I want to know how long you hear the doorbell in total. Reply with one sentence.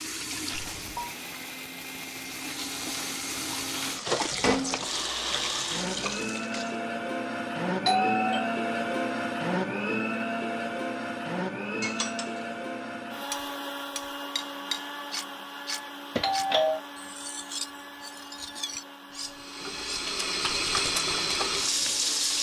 You can hear the doorbell for 2 seconds altogether.